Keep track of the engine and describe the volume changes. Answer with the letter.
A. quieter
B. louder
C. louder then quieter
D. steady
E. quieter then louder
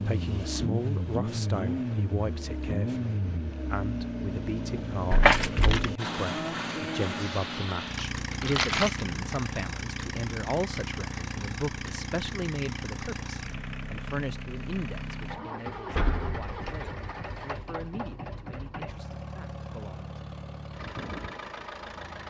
A.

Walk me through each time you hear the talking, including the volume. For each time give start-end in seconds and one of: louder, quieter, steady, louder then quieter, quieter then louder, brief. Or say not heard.
0.1-20.1 quieter.